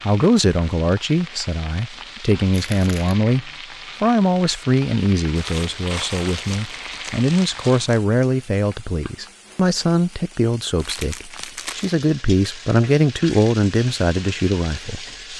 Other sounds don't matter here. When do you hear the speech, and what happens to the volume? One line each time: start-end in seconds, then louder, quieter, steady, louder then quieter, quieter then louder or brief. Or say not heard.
0.0-15.3 steady.